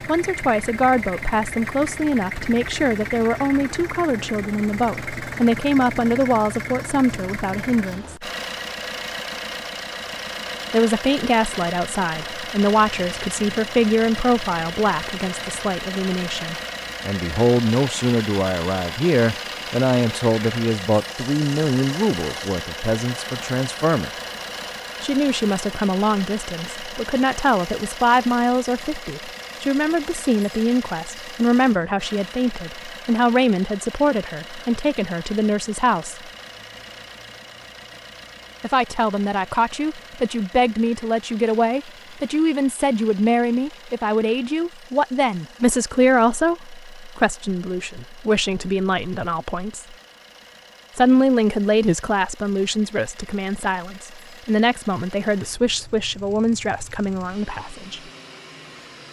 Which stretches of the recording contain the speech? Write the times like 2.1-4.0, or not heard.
0.1-8.2, 10.7-24.1, 25.0-36.3, 38.6-50.0, 51.0-58.0.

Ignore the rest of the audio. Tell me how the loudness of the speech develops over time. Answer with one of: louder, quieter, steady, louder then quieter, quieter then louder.
steady.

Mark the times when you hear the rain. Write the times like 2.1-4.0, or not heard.
not heard.